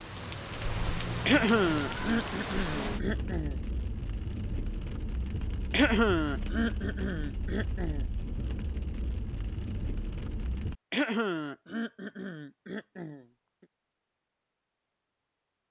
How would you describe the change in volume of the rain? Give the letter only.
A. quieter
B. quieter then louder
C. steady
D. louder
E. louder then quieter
A.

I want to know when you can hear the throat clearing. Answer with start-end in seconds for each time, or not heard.
1.2-3.5, 5.7-8.1, 10.9-13.2.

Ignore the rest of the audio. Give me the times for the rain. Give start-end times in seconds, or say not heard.
0.0-10.8.